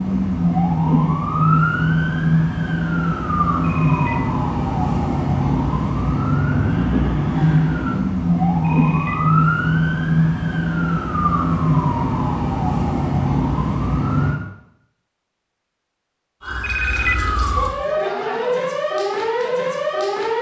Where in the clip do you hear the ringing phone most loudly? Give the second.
17 s.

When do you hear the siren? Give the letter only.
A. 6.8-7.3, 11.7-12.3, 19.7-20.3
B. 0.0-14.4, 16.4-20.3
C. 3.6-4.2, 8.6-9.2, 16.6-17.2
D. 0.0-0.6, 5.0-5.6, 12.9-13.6
B.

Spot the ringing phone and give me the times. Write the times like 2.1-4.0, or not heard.
3.6-4.2, 8.6-9.2, 16.6-17.2.